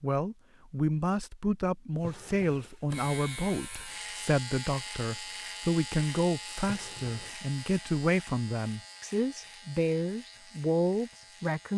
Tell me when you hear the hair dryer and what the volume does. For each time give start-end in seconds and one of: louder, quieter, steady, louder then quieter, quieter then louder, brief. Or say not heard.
not heard.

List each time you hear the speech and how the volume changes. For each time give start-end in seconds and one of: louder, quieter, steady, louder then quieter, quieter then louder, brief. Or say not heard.
0.0-11.7 steady.